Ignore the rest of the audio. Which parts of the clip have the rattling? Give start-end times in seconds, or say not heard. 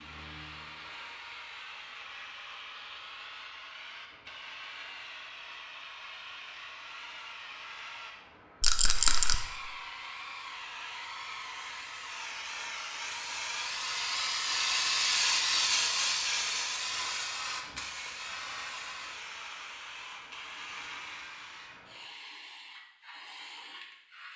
8.6-9.3.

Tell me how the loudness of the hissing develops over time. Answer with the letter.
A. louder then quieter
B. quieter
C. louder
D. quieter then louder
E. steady
A.